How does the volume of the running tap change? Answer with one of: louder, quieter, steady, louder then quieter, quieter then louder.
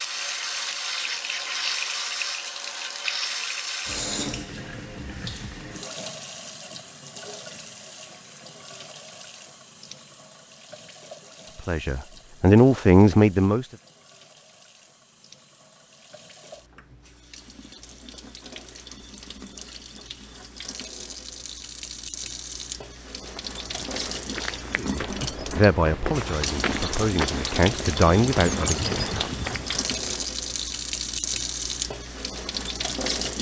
quieter then louder.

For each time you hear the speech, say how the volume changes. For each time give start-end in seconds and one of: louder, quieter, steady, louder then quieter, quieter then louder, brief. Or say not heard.
11.6-13.7 brief
24.8-28.9 quieter then louder.